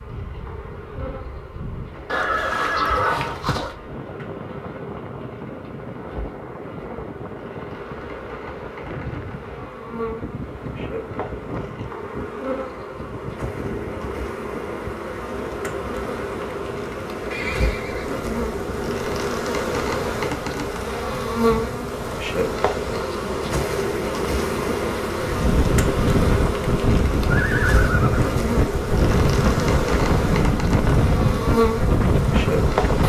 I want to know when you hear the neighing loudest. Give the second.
3 s.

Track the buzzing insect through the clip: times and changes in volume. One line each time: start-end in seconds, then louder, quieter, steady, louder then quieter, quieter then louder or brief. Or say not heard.
0.0-33.0 louder.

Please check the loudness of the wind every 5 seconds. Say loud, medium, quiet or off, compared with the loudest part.
quiet, quiet, quiet, quiet, quiet, loud, loud.